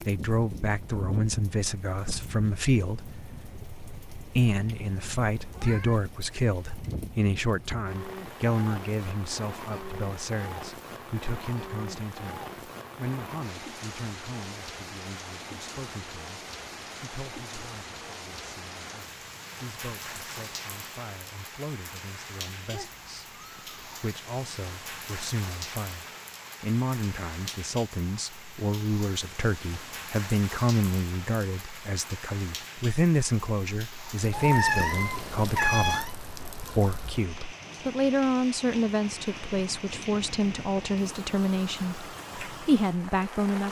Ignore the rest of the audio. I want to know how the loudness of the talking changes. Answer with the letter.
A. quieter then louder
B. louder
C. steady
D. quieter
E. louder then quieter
A.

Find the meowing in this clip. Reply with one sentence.
You can hear the meowing from 5.5 to 6.1 s, from 22.6 to 23.9 s and from 34.3 to 36.1 s.